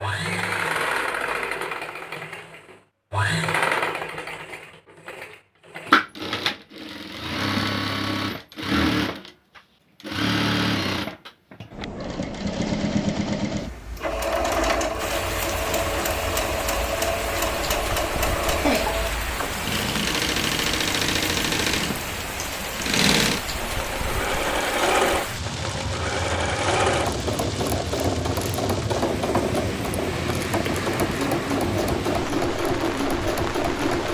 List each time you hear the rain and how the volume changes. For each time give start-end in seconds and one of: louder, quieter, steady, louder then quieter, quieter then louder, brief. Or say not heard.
14.9-34.1 steady.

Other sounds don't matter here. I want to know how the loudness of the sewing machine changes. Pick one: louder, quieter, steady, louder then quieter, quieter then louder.
steady.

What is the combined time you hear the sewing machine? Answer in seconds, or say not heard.
34 s.